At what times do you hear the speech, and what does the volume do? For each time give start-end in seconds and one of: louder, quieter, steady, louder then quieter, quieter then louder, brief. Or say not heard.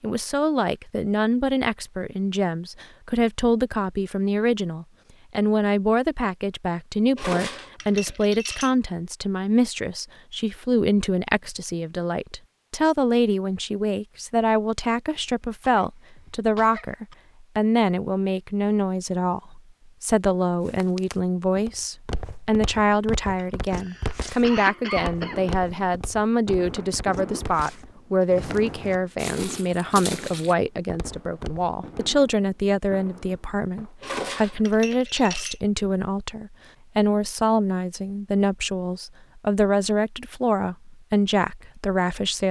0.0-42.4 steady.